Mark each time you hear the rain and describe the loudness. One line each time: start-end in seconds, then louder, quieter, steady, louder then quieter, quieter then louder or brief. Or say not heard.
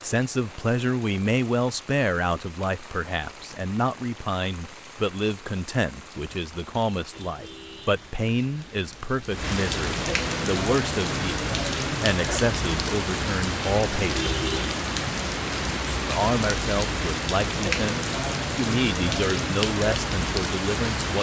0.0-21.1 louder.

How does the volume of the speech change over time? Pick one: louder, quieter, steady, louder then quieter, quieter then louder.
steady.